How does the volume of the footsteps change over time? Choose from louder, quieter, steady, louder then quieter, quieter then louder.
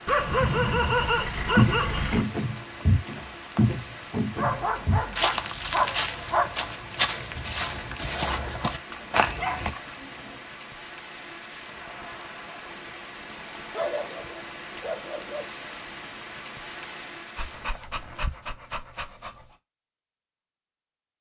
steady.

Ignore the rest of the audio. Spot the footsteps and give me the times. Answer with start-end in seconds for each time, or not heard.
1.6-9.7.